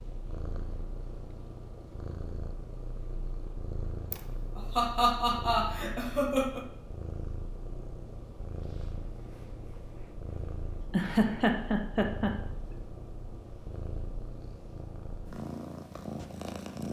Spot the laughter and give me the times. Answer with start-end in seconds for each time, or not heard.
4.1-6.7, 10.9-12.8.